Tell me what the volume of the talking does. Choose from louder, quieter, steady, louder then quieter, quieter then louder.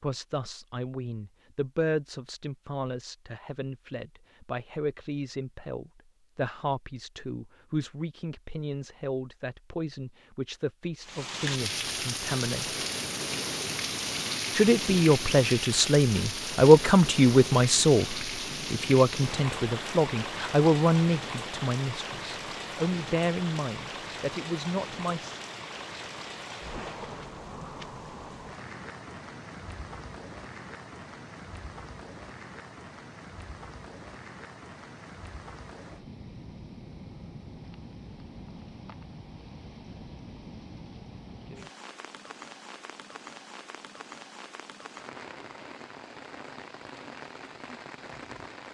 louder then quieter.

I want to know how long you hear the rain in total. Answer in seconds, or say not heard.
38 s.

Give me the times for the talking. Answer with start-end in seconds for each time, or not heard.
0.0-12.8, 14.6-25.4.